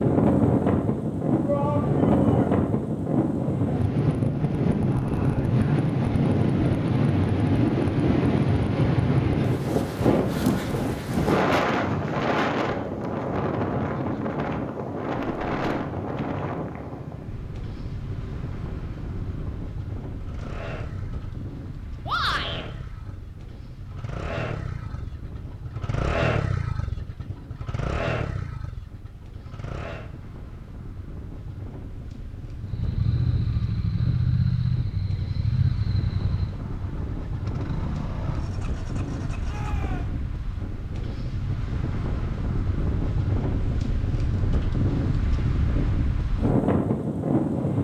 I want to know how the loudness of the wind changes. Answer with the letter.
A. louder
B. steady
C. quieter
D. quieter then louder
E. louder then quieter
D.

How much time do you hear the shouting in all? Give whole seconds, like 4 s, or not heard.
2 s.